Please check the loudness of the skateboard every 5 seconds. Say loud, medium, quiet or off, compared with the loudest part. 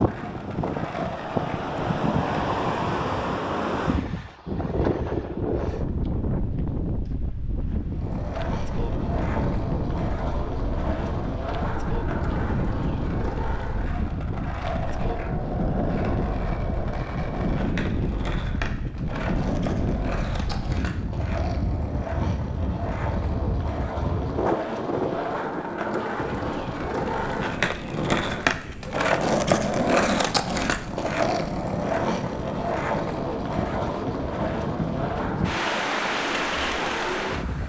medium, medium, medium, medium, medium, loud, loud, medium.